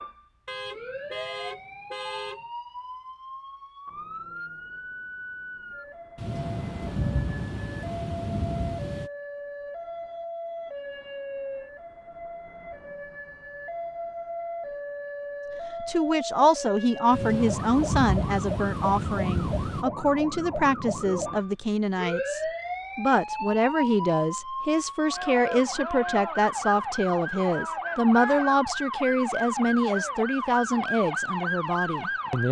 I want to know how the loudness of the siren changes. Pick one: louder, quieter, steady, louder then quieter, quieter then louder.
louder.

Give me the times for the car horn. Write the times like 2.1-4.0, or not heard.
0.5-2.5.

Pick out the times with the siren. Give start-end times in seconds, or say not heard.
0.0-32.4.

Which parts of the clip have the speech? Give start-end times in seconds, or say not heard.
15.8-32.4.